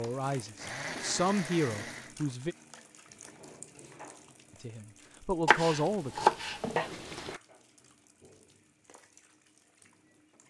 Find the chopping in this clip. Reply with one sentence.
The chopping can be heard from 5.5 to 7.4 s.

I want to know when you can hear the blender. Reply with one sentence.
The blender can be heard from 0.0 to 2.1 s.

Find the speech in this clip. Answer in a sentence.
You can hear the speech from 0.0 to 2.5 s and from 4.6 to 6.2 s.